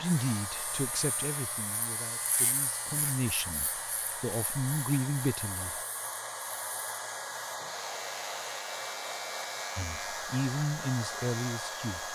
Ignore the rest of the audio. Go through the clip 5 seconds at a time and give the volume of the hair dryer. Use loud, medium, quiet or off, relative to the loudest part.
medium, loud, loud.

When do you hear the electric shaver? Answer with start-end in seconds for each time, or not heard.
0.0-12.0.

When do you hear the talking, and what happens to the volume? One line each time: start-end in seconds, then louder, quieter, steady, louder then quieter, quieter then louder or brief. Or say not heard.
0.0-5.8 quieter then louder
9.8-12.0 brief.